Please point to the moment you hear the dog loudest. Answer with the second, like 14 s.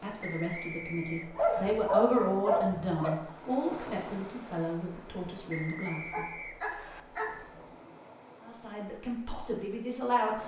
2 s.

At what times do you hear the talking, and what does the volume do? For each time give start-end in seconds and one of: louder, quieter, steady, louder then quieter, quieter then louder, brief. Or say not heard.
0.0-6.2 louder then quieter
8.4-10.4 brief.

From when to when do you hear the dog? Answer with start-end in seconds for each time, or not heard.
1.4-3.1, 6.0-7.3.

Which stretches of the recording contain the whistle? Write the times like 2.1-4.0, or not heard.
0.2-1.8, 5.5-7.0.